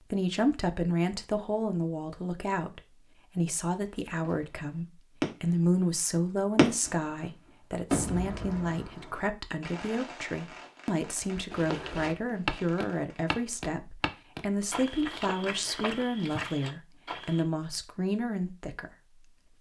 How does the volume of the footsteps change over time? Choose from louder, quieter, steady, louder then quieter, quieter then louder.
quieter.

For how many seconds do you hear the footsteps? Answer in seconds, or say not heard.
6 s.